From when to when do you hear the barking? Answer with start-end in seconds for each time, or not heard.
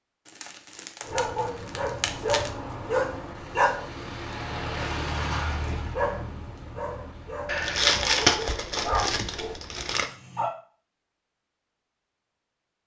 1.0-10.5.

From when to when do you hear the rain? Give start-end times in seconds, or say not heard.
not heard.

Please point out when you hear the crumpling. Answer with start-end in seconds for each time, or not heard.
0.2-2.5, 7.5-10.1.